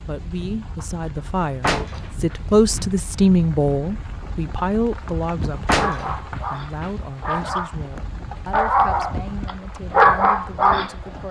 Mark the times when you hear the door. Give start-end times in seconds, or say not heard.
1.6-2.8, 5.7-7.5.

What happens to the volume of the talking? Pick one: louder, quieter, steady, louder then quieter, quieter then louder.
louder then quieter.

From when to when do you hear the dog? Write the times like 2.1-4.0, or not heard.
5.7-7.8, 8.5-10.9.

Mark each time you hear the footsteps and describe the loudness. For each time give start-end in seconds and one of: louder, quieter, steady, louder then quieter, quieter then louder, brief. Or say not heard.
not heard.